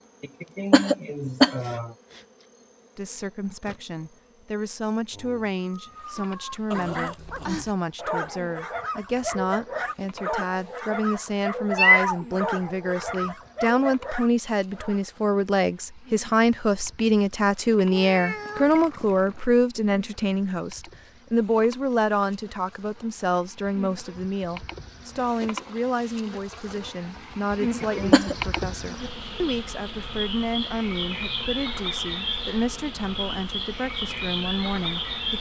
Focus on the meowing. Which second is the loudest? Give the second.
12 s.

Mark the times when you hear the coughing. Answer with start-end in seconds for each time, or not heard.
0.2-1.9, 27.6-28.4.